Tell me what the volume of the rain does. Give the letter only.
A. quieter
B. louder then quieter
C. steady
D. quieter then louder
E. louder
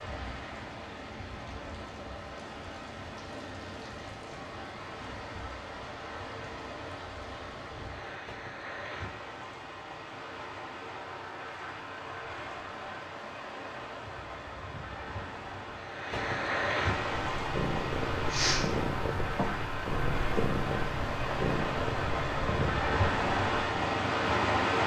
E.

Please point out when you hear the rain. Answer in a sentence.
The rain can be heard from 0.0 to 24.8 s.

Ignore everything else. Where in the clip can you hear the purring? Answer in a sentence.
You can hear the purring from 17.0 to 24.8 s.